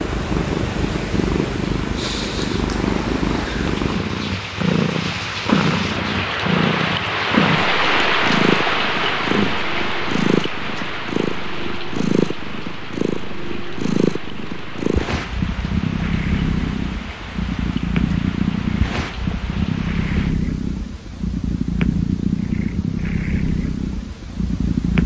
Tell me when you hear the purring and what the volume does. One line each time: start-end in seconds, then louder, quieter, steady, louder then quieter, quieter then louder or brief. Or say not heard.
0.0-25.0 steady.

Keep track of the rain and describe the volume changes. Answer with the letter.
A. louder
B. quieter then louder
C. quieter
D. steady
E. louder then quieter
E.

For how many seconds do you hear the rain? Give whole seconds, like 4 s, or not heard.
20 s.